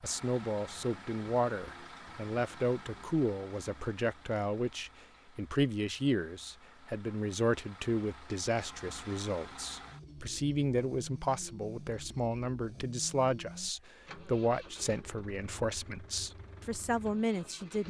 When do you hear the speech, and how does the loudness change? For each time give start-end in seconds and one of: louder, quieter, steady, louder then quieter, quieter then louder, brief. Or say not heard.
0.0-17.8 steady.